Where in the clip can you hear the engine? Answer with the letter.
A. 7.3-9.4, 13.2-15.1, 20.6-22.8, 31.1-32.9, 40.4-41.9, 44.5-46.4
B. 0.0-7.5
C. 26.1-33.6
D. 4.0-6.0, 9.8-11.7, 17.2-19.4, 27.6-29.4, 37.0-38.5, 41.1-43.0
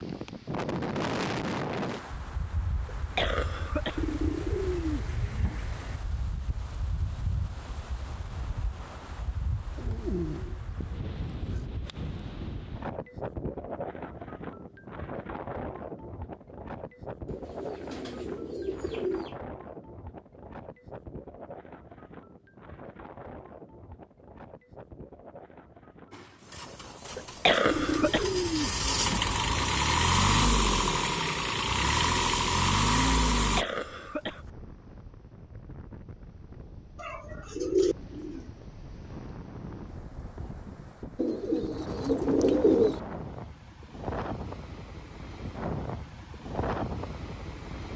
C.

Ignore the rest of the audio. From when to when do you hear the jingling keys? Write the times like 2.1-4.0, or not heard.
not heard.